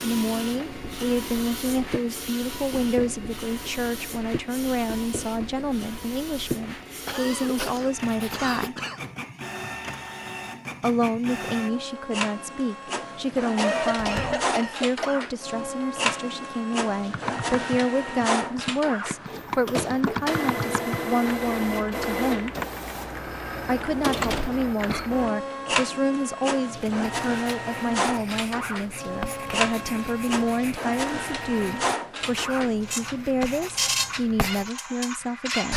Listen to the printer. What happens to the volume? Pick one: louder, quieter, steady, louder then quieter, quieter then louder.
louder.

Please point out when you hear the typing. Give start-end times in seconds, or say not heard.
17.1-25.3.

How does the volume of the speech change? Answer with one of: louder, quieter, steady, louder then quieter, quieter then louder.
steady.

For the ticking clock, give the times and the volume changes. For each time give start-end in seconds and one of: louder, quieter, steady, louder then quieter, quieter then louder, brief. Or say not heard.
not heard.